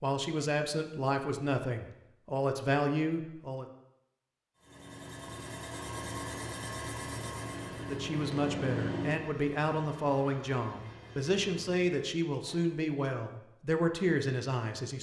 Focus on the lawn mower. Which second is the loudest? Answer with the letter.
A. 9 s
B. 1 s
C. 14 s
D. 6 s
A.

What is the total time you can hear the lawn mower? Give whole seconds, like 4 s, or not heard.
5 s.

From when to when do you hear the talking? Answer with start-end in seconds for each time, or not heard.
0.0-3.6, 7.8-14.9.